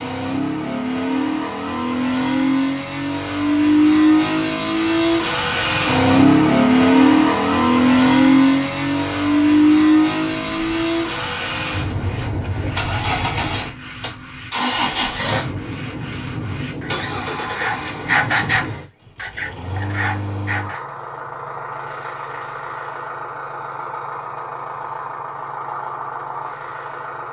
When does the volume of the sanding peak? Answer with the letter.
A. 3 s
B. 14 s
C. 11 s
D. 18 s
D.